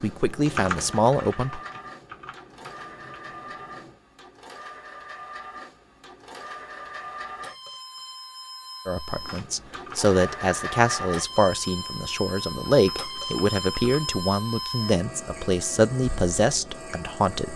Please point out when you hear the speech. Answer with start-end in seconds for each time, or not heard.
0.0-1.6, 8.8-17.5.